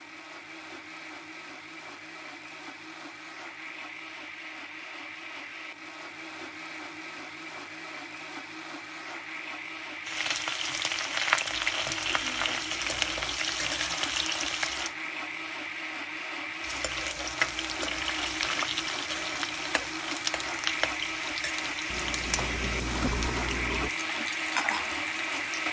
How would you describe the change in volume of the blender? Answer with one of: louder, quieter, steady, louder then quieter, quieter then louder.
louder.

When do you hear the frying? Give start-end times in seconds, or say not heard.
10.1-14.9, 16.6-25.6.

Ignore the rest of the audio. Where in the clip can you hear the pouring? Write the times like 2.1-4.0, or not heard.
21.9-23.9.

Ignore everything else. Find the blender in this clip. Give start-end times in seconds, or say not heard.
0.0-25.6.